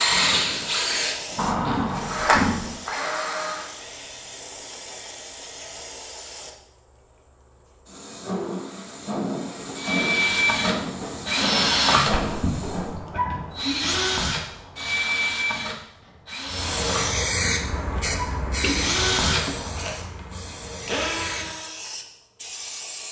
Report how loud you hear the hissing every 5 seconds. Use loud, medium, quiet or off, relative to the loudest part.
medium, medium, loud, loud, medium.